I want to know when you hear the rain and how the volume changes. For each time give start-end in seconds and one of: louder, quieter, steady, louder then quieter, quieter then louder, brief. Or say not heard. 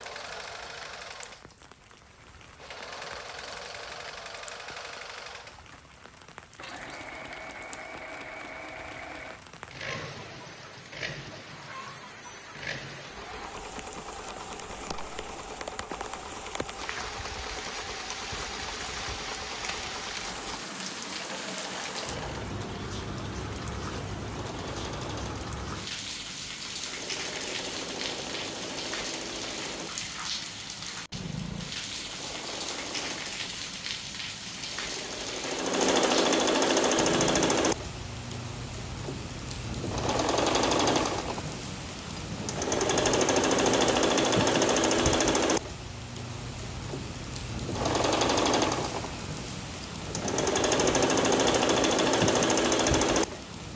0.0-53.7 louder.